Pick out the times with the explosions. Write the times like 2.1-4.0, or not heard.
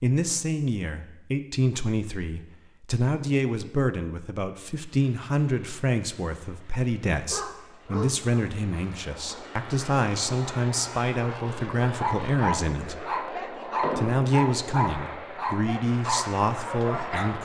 13.8-14.2.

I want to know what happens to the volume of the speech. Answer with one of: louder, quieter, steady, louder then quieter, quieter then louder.
steady.